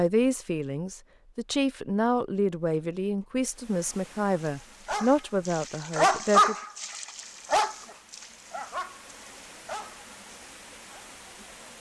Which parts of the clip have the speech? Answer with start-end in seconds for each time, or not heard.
0.0-6.5.